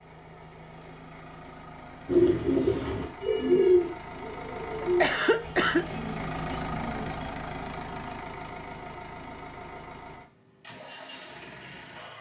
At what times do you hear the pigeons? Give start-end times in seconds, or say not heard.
2.0-7.2.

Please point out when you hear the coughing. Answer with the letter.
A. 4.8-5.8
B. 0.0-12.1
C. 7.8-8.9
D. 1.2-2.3
A.